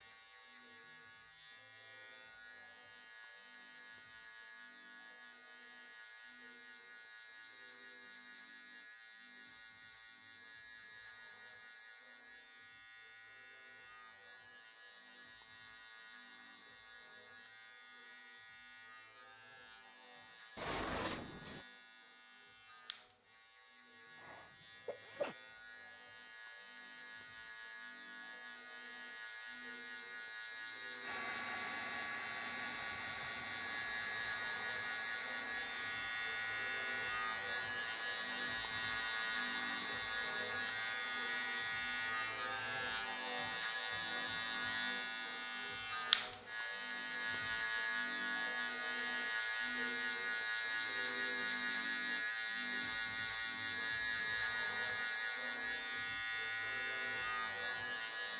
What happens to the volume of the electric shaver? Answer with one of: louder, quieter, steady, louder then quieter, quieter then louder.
louder.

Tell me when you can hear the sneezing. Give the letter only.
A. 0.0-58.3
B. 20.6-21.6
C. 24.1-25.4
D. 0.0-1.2
C.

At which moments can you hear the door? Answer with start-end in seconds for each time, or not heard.
20.6-21.6.